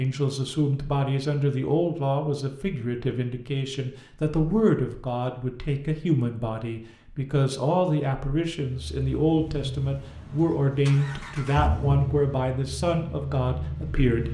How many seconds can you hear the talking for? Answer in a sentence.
You can hear the talking for 14 seconds altogether.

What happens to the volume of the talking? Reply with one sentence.
The loudness of the talking stays about the same.